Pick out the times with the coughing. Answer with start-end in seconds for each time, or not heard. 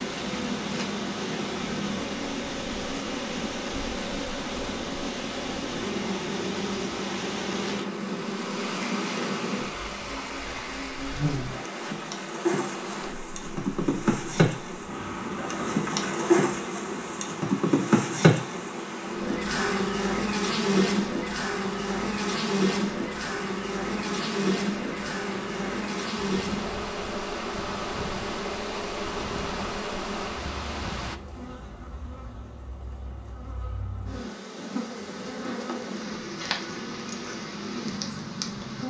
not heard.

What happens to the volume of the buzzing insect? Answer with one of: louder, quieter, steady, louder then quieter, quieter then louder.
louder then quieter.